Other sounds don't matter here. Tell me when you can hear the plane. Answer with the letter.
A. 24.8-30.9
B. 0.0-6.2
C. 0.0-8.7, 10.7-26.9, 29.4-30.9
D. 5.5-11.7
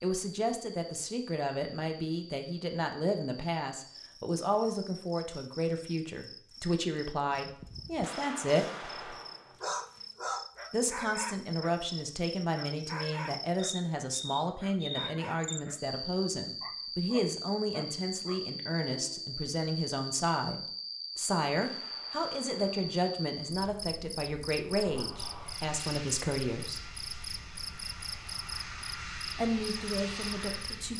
A.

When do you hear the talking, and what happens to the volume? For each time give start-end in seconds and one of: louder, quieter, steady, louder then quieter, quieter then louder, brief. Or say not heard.
0.0-8.7 steady
10.7-26.9 steady
29.4-30.9 brief.